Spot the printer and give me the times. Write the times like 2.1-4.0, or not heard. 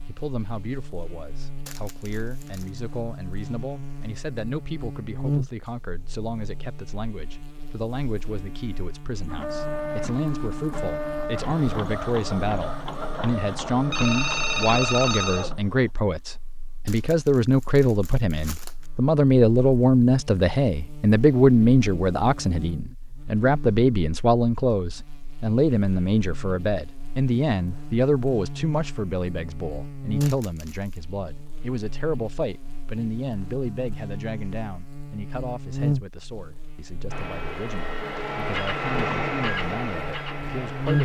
9.2-15.9, 37.1-40.9.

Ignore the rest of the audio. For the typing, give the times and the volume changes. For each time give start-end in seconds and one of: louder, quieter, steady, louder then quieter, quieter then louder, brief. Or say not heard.
not heard.